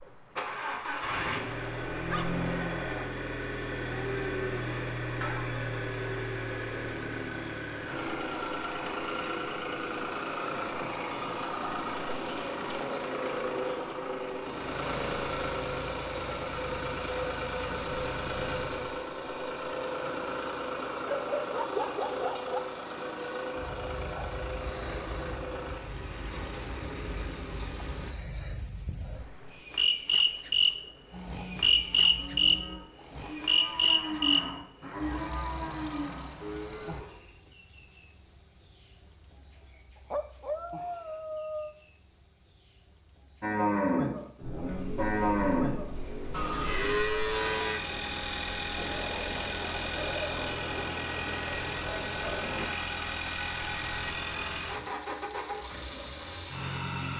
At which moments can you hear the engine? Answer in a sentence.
The engine can be heard from 0.0 to 28.1 s and from 44.4 to 57.1 s.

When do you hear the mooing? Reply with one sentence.
You can hear the mooing from 31.1 to 37.3 s and from 43.4 to 47.8 s.